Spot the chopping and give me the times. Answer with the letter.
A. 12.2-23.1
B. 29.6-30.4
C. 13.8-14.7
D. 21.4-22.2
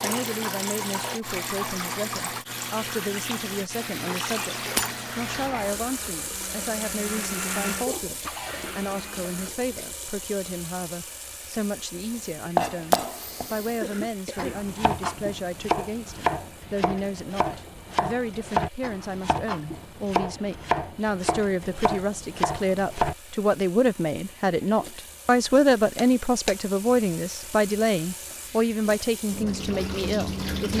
A.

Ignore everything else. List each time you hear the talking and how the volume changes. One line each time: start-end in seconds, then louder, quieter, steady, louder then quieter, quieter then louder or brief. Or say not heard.
0.0-30.7 louder.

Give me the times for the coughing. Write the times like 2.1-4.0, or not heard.
13.8-14.7.